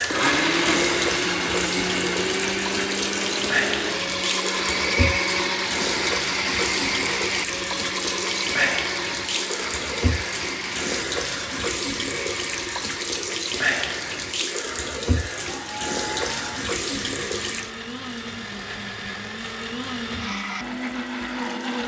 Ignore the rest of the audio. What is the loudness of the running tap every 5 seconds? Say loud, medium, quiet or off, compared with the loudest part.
loud, loud, loud, loud, quiet.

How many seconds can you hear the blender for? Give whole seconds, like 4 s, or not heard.
22 s.